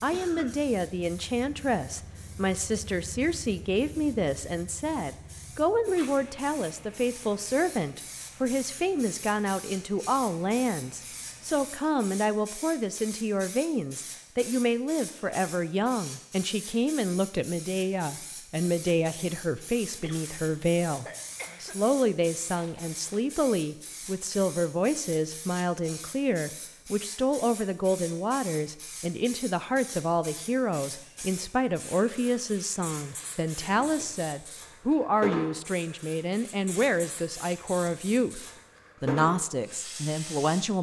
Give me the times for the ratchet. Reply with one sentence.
You can't hear the ratchet here.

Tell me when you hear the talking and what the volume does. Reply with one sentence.
You can hear the talking from 0.0 to 40.7 s, at a steady volume.